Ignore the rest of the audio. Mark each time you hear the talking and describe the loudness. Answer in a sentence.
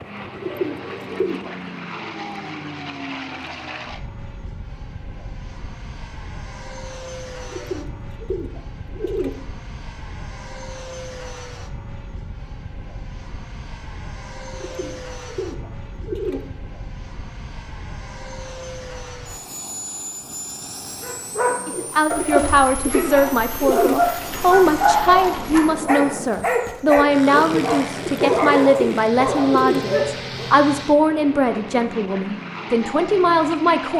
You can hear the talking from 21.6 to 33.9 s, at a steady volume.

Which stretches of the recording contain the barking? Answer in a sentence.
The barking can be heard from 21.0 to 30.5 s.